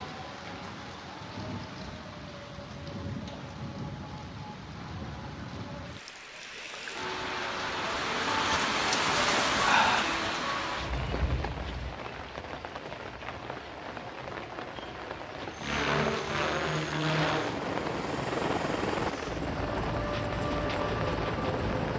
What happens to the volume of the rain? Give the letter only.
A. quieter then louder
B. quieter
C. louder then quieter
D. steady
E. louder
C.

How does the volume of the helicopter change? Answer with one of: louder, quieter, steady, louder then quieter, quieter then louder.
steady.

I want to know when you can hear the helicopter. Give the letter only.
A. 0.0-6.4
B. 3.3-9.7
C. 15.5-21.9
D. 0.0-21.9
C.